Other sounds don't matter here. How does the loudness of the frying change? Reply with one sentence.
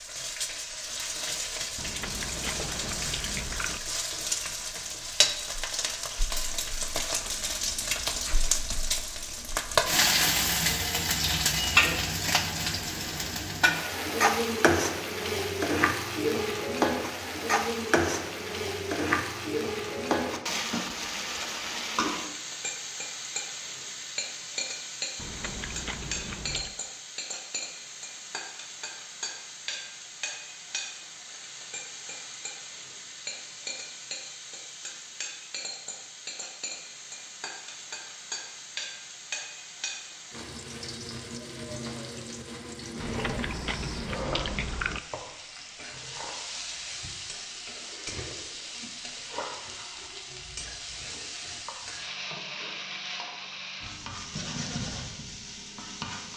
The loudness of the frying goes down.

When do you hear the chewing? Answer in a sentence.
You can hear the chewing from 1.8 to 3.8 s, from 25.1 to 26.8 s and from 43.0 to 45.0 s.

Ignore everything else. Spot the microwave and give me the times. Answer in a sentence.
You can't hear the microwave here.